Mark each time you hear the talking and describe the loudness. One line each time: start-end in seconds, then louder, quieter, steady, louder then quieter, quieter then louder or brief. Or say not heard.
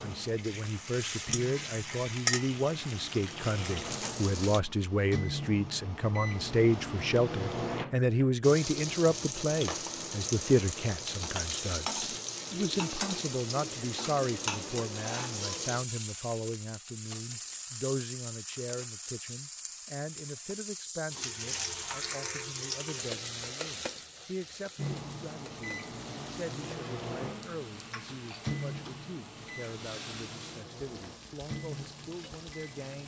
0.0-33.0 quieter.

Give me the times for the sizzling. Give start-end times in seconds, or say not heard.
0.0-4.6, 8.4-33.0.